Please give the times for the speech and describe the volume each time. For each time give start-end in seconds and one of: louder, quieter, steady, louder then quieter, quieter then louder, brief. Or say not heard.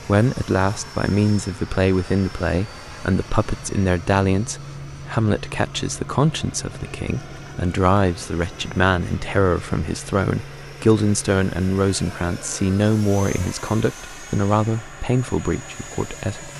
0.1-16.5 steady.